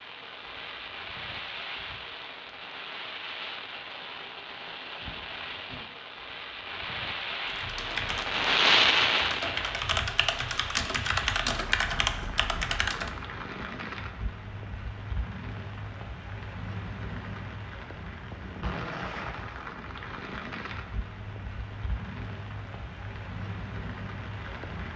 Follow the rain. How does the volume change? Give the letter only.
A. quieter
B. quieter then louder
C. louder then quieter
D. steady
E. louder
C.